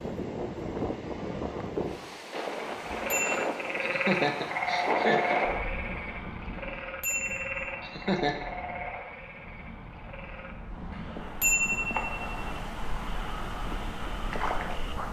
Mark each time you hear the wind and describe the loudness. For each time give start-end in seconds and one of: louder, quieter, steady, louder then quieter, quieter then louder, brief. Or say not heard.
0.0-15.0 quieter then louder.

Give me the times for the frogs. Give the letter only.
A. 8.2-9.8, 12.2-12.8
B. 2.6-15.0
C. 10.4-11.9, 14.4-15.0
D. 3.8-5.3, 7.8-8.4
B.